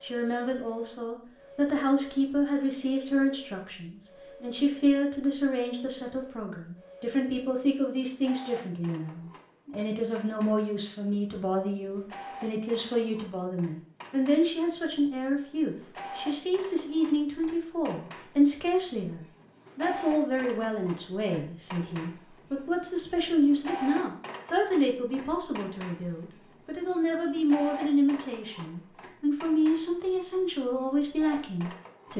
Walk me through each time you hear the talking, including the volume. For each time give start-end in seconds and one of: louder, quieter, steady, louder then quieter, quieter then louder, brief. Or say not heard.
0.0-32.1 steady.